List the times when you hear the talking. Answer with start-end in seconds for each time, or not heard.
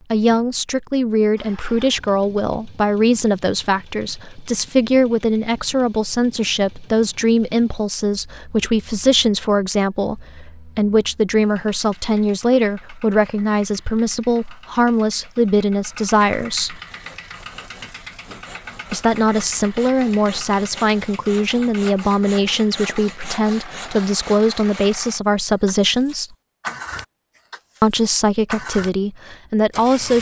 0.1-16.8, 18.9-26.3, 27.8-30.1.